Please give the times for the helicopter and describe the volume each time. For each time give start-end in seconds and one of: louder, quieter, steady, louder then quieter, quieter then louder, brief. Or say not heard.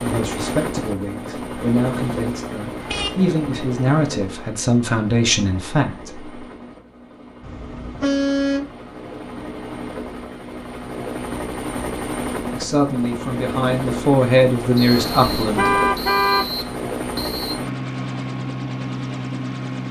0.0-19.8 quieter then louder.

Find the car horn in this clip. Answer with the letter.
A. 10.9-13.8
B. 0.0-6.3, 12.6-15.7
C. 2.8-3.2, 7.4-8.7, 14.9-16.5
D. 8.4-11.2
C.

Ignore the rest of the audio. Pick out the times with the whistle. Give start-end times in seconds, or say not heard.
14.8-17.6.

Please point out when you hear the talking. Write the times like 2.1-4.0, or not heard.
0.0-6.3, 12.6-15.7.